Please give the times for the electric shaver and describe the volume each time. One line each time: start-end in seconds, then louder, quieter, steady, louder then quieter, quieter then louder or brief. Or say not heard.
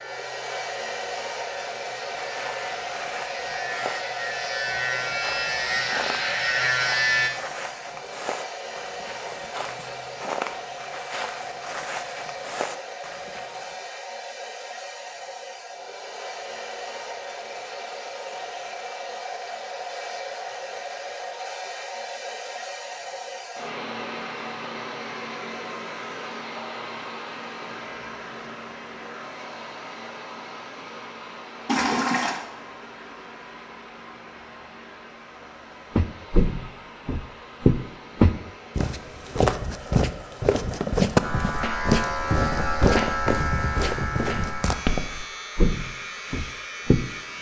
0.0-7.3 louder
41.2-47.3 quieter.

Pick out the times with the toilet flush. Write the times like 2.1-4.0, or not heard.
31.6-32.4.